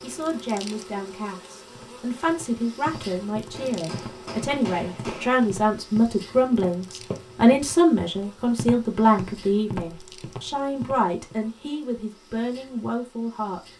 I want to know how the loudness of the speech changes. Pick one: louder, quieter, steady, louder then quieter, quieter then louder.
louder then quieter.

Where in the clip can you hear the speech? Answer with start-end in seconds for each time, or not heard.
0.0-13.6.